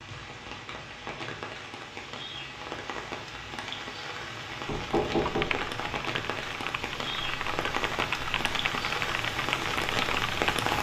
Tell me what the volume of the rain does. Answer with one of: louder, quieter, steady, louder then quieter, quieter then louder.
louder.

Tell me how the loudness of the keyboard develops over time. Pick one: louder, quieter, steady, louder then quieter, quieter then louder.
louder.